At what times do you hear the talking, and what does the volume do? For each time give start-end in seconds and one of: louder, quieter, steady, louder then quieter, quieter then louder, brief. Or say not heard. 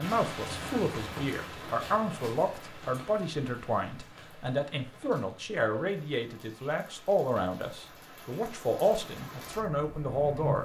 0.0-10.6 steady.